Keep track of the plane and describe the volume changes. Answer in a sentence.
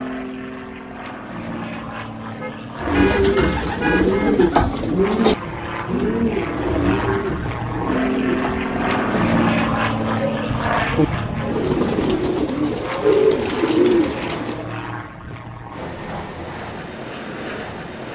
The volume of the plane goes up, then down.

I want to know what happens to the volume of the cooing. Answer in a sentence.
The loudness of the cooing goes down, then up.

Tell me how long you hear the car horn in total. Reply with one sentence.
The car horn can be heard for 3 seconds in total.